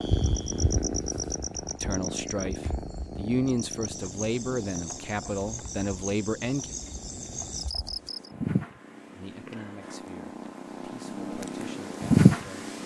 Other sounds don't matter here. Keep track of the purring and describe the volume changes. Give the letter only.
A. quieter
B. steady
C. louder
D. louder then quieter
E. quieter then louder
E.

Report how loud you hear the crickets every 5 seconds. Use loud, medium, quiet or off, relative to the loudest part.
loud, loud, off.